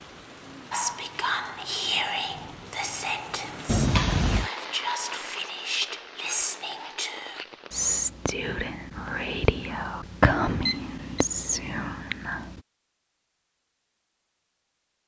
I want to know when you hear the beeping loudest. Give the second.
4 s.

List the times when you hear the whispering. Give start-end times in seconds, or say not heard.
0.7-12.6.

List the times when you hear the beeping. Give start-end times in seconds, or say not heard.
3.6-4.5, 10.7-11.2.